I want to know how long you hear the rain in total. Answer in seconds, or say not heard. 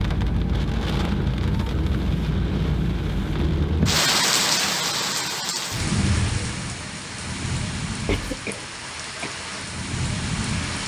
11 s.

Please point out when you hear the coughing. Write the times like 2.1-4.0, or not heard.
8.1-9.3.